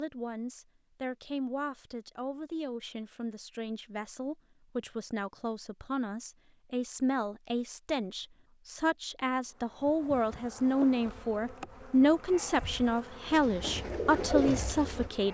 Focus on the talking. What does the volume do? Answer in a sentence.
The loudness of the talking goes up.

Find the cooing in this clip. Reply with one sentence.
The cooing can be heard from 13.2 to 15.2 s.